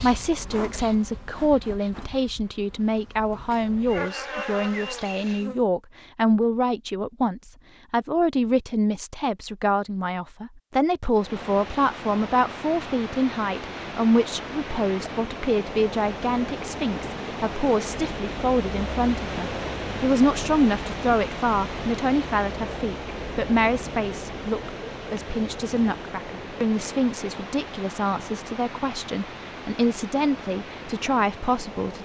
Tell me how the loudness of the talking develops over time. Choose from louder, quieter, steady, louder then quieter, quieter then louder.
steady.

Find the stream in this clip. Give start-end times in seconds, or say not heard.
11.1-32.0.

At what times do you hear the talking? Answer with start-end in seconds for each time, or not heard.
0.0-32.0.